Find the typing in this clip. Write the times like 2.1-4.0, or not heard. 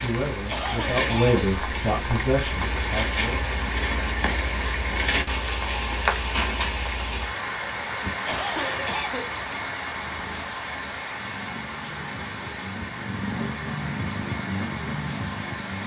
not heard.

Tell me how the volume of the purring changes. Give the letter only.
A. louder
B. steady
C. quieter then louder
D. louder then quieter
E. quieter
A.